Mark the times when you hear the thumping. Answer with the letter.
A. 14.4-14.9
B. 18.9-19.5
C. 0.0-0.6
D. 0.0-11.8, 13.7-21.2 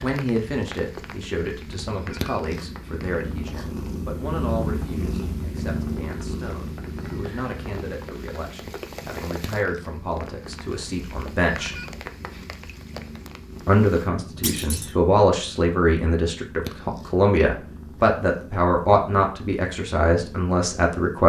A.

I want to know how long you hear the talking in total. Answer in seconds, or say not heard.
19 s.